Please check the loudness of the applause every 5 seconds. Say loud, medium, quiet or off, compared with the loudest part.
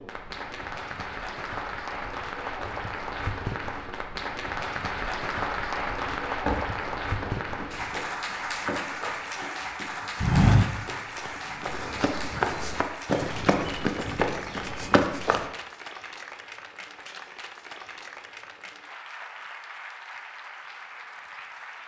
loud, loud, medium, medium, medium.